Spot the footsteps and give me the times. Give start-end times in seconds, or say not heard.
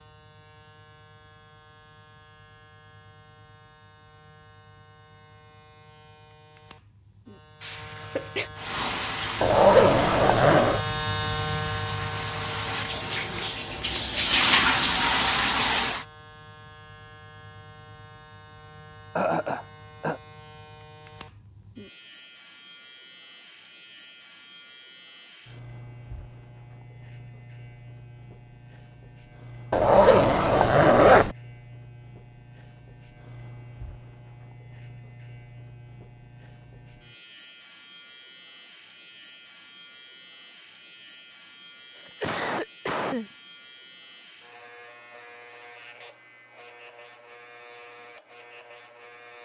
not heard.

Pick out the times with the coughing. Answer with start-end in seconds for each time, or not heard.
7.6-8.5, 19.1-20.2, 42.0-43.3.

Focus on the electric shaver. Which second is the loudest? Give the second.
11 s.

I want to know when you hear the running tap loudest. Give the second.
15 s.